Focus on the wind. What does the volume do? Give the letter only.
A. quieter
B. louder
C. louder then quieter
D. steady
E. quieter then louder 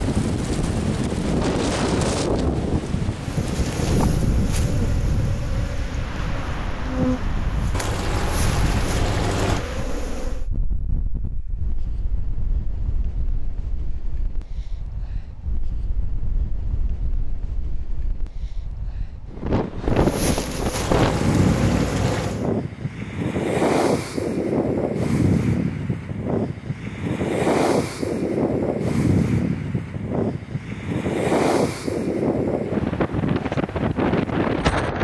E.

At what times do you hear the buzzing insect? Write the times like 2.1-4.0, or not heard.
3.1-10.5, 19.9-22.5.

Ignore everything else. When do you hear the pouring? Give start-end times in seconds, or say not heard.
7.7-9.7, 20.7-22.4.